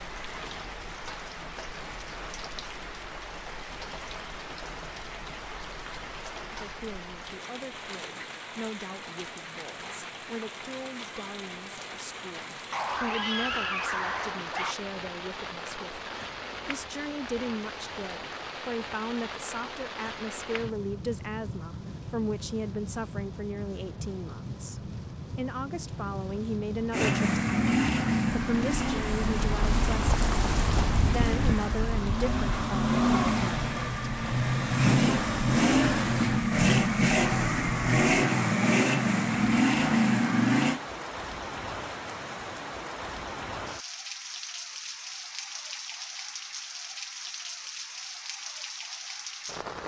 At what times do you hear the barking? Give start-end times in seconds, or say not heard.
12.7-14.8.